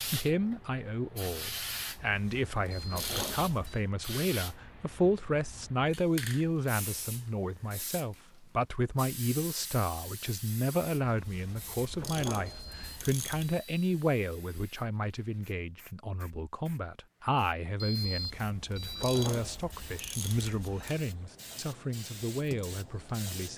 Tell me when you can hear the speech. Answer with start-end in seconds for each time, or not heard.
0.1-23.5.